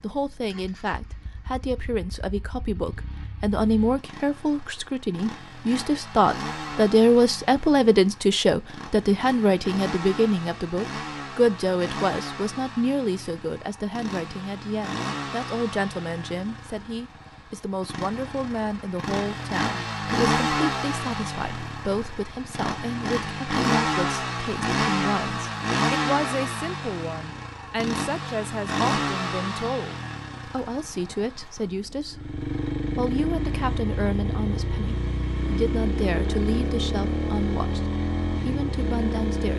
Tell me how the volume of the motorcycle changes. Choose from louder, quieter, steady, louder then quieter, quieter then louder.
louder.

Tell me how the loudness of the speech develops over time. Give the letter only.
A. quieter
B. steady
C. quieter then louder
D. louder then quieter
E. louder
A.